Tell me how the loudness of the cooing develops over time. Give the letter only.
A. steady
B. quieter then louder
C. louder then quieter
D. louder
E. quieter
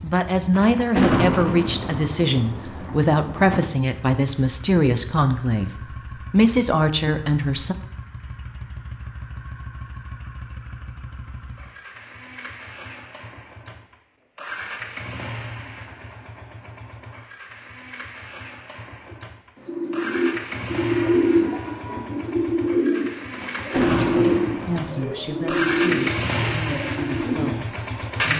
E.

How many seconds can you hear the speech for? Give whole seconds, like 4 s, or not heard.
12 s.